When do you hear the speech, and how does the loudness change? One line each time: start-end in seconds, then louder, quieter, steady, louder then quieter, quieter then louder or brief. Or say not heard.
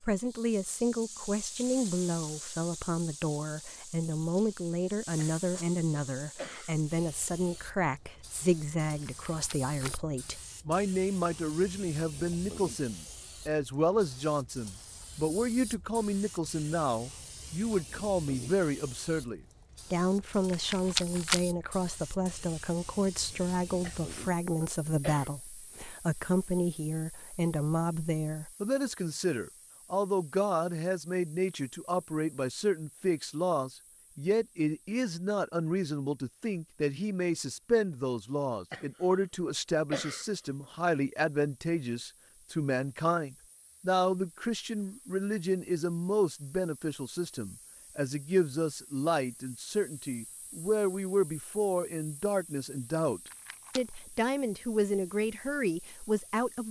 0.0-56.6 steady.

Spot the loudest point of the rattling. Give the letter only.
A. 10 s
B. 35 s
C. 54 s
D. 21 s
D.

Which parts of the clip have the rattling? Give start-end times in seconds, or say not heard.
9.0-9.9, 20.4-21.4, 53.2-53.9.